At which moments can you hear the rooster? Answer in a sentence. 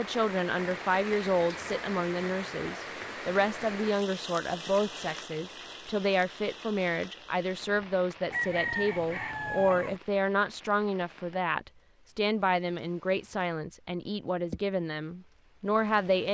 The rooster can be heard from 8.3 to 10.0 s.